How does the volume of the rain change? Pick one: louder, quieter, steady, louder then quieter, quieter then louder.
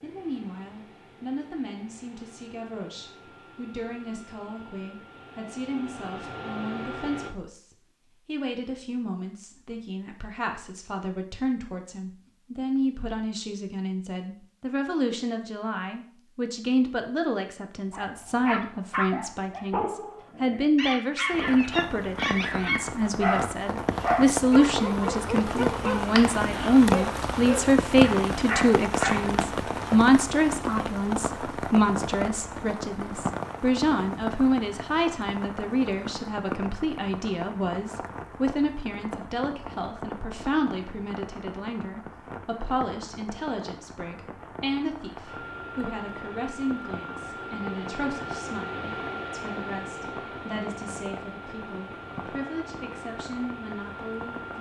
quieter.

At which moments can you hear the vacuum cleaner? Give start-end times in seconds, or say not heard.
0.0-7.3, 45.2-54.5.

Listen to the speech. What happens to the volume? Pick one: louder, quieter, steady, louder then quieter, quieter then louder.
louder then quieter.